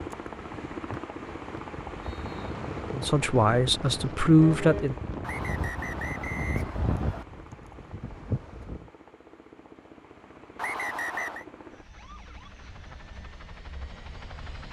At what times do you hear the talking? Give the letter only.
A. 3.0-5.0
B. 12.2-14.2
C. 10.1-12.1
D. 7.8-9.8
A.